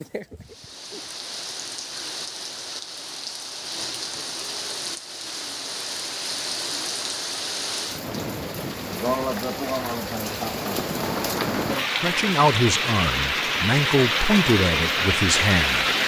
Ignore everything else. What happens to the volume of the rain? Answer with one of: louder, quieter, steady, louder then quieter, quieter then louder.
louder.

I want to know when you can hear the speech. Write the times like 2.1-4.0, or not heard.
12.0-15.8.